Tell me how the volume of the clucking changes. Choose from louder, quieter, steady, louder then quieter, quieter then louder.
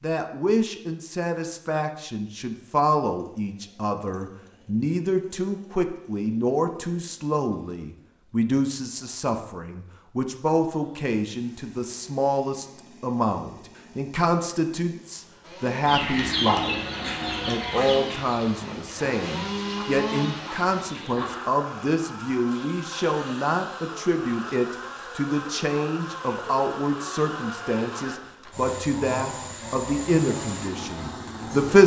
quieter.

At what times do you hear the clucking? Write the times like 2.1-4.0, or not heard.
15.8-21.4.